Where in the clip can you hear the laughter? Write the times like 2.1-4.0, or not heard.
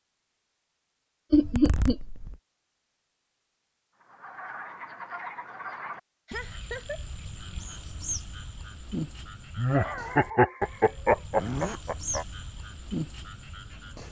1.3-1.9, 6.2-7.0, 9.6-12.2.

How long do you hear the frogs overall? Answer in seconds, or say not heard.
10 s.